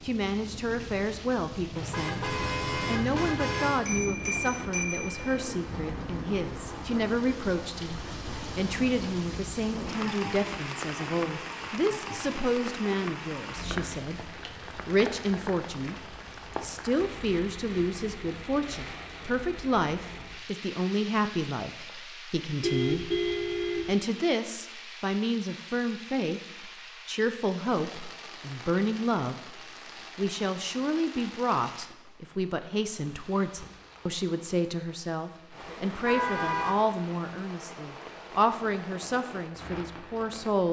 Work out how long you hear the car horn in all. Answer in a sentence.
You can hear the car horn for 4 seconds altogether.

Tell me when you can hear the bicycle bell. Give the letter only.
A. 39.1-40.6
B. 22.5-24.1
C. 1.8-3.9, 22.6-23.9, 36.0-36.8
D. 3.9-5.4
D.